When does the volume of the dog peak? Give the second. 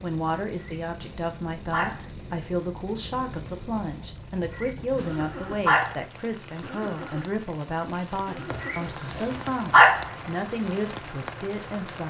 10 s.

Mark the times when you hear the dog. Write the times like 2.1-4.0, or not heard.
0.5-2.0, 4.4-6.0, 8.5-10.1.